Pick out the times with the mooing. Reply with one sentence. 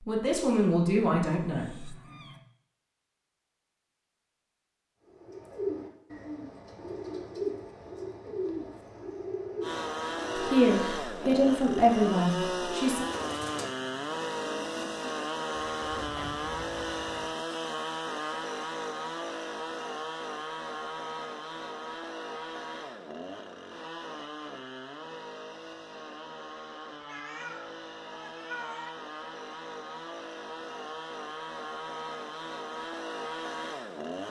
You can't hear the mooing here.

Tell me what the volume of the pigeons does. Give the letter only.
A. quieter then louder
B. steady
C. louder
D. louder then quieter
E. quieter
E.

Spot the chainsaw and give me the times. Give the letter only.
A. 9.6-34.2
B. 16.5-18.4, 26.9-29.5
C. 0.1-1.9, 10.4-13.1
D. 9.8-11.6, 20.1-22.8
A.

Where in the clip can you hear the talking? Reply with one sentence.
You can hear the talking from 0.1 to 1.9 s and from 10.4 to 13.1 s.